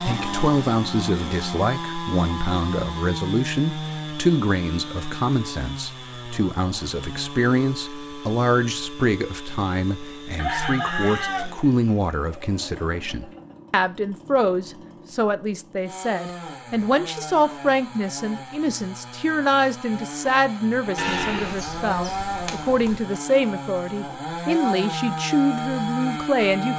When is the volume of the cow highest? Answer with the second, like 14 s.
21 s.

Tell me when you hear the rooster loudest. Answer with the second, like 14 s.
11 s.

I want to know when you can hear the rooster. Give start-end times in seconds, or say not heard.
10.3-13.6.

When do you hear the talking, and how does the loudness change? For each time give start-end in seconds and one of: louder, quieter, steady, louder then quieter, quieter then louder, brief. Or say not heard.
0.0-26.7 steady.